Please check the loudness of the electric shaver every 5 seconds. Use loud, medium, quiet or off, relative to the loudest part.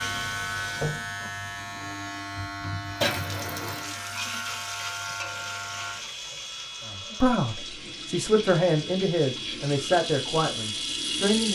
loud, medium, loud.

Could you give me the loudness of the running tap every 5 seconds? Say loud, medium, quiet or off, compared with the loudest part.
loud, medium, loud.